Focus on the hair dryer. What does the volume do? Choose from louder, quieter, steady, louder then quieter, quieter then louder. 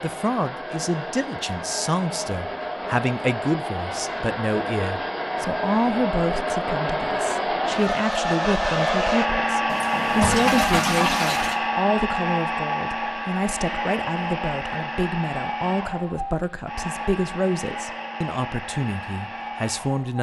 louder then quieter.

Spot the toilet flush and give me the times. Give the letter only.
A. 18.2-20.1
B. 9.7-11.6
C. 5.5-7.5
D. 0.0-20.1
B.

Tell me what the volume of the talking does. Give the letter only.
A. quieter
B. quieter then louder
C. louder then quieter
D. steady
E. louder
D.